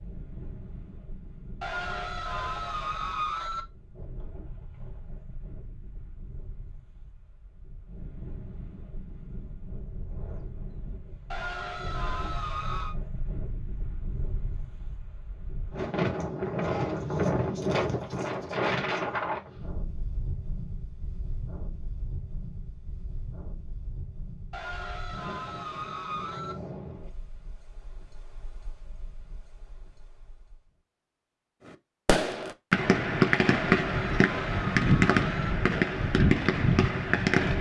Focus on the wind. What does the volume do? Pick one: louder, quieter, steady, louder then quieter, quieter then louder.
louder then quieter.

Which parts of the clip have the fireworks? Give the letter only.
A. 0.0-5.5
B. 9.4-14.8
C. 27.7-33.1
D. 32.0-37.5
D.